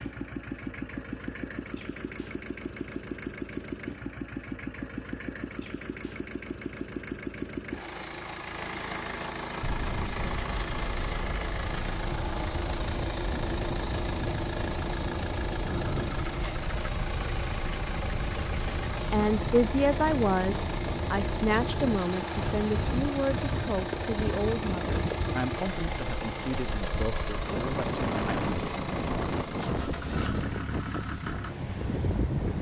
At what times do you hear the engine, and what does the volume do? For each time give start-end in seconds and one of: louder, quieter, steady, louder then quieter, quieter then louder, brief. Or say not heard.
0.0-32.5 steady.